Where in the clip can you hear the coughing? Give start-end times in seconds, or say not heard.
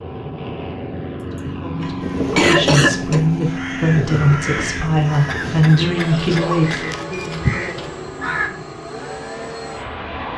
1.1-3.2, 5.2-7.2.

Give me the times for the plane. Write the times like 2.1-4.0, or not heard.
0.0-10.3.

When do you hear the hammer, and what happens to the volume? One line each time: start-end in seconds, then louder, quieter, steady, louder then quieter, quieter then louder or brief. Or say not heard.
not heard.